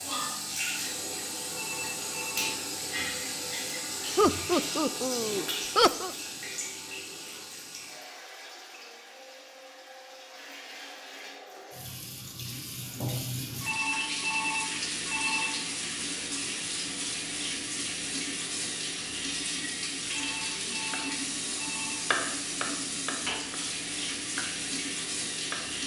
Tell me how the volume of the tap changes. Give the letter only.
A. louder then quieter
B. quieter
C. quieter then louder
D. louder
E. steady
C.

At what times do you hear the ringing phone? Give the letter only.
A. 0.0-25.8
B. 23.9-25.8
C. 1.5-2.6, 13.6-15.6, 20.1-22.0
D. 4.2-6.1
C.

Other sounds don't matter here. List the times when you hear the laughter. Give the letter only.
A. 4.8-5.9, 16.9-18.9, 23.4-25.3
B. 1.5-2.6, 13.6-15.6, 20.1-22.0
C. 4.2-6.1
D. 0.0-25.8
C.